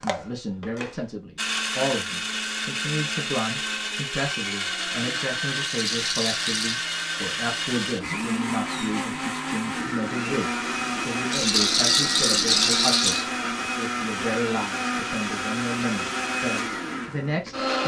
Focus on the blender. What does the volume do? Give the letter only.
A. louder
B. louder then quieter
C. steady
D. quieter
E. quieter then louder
C.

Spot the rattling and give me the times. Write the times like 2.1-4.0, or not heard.
5.6-6.8, 11.3-13.2.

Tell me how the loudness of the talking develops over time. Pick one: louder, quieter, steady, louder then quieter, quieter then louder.
steady.